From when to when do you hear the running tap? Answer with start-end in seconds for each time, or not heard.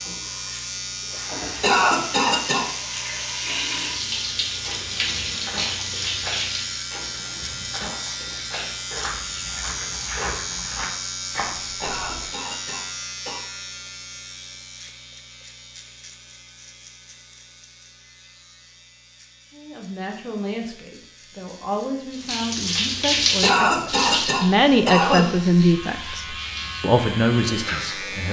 0.0-6.8, 22.1-28.2.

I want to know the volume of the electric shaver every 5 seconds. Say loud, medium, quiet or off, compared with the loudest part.
loud, loud, loud, quiet, quiet, loud.